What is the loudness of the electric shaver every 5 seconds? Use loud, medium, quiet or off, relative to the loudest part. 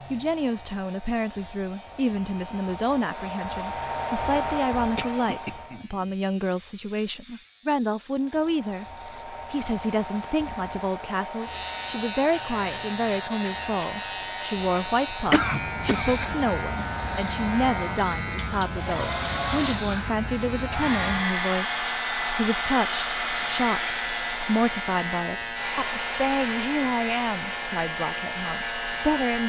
quiet, quiet, loud, loud, loud, loud.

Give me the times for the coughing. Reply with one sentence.
The coughing can be heard from 4.3 to 6.0 s and from 15.3 to 16.1 s.